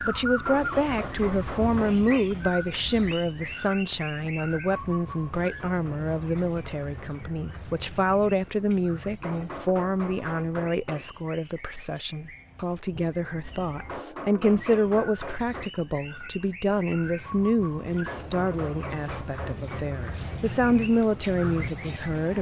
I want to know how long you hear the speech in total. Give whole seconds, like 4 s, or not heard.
22 s.